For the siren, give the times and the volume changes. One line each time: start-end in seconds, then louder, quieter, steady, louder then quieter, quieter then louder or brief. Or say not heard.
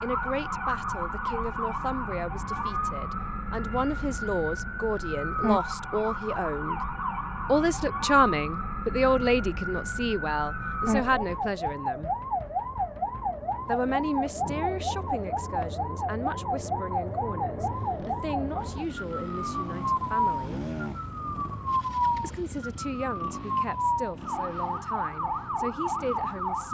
0.0-26.6 steady.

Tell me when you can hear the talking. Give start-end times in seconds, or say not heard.
0.0-6.8, 7.5-12.1, 13.7-20.6, 22.2-26.6.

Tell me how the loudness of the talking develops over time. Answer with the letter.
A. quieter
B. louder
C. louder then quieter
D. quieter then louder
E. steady
C.